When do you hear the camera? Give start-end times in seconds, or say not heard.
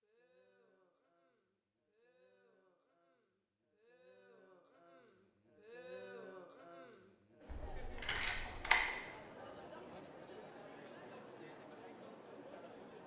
7.5-8.9.